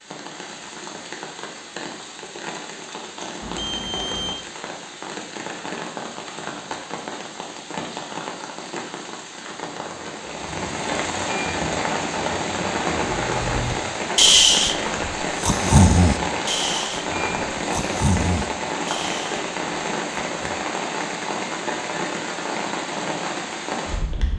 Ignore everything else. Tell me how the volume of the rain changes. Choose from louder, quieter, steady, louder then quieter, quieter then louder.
louder.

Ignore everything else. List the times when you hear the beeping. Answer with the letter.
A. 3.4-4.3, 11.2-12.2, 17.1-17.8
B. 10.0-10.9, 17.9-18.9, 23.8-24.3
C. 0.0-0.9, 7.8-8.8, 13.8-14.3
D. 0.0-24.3
A.